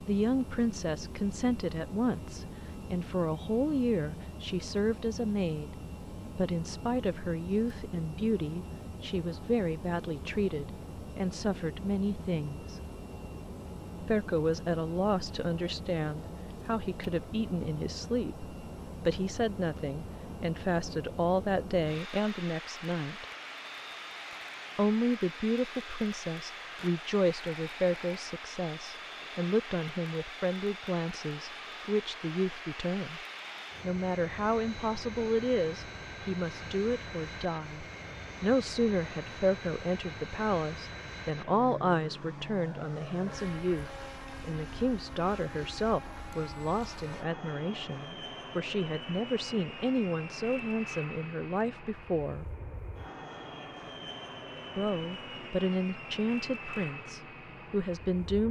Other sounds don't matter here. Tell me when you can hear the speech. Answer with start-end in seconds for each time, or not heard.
0.0-12.8, 14.0-23.2, 24.8-33.2, 33.8-52.5, 54.8-58.4.